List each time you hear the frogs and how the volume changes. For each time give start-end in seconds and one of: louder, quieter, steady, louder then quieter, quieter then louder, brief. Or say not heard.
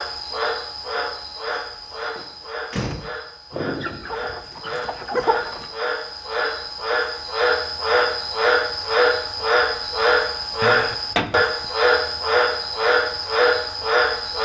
0.0-14.3 louder.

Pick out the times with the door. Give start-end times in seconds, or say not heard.
1.5-3.1, 10.6-11.4.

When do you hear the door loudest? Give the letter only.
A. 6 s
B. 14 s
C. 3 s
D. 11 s
D.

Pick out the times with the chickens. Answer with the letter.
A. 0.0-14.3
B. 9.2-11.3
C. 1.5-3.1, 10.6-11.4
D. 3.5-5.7
D.